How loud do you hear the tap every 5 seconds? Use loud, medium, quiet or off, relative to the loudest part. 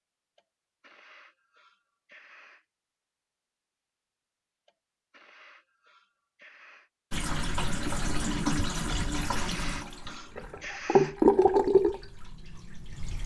off, medium, loud.